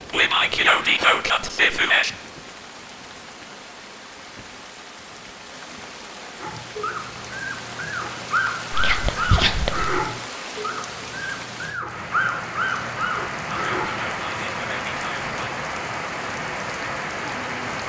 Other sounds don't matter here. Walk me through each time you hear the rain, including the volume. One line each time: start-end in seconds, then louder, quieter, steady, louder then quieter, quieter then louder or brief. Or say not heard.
0.0-17.8 louder.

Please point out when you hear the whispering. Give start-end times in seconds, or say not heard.
0.1-2.1, 8.7-9.9, 13.4-15.2.